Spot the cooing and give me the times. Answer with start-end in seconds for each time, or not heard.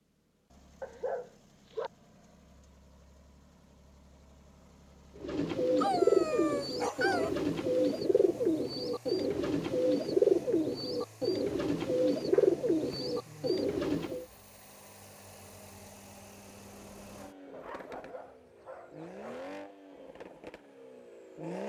5.2-14.2.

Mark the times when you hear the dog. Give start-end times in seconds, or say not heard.
0.8-1.9, 5.8-7.3, 12.3-13.7, 17.5-19.4.